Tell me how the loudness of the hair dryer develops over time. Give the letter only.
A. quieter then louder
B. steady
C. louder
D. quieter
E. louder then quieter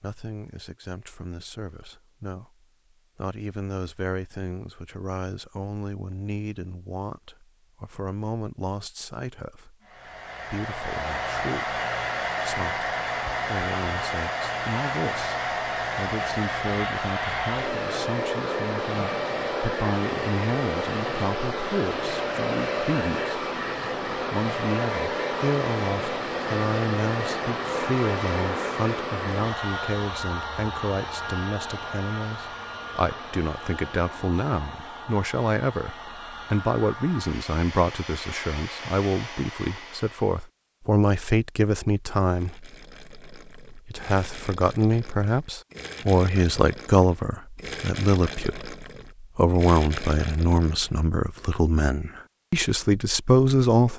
D.